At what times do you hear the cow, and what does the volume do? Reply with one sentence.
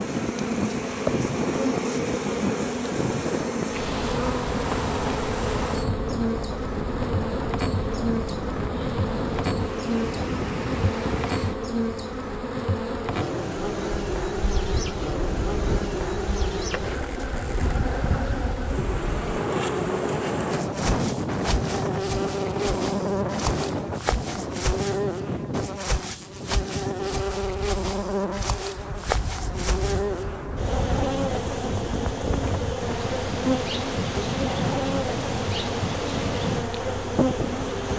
The cow can't be heard in this clip.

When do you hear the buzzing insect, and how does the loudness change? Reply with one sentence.
You can hear the buzzing insect from 0.0 to 37.9 s, at a steady volume.